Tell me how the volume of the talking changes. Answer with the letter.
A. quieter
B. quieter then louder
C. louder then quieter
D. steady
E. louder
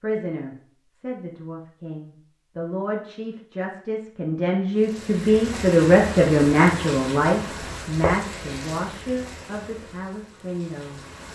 C.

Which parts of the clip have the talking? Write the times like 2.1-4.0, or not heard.
0.0-11.2.